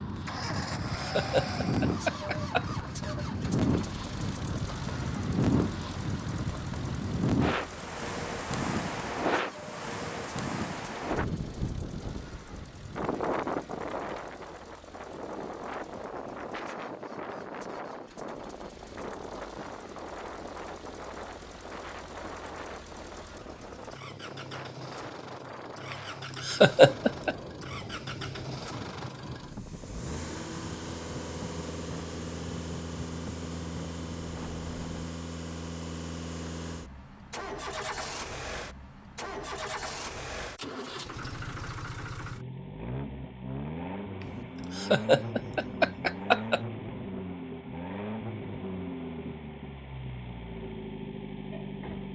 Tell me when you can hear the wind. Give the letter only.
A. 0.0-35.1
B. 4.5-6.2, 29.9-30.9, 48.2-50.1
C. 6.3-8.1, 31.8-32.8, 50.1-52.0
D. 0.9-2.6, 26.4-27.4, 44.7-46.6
A.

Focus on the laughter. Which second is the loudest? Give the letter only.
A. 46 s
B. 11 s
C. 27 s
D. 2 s
C.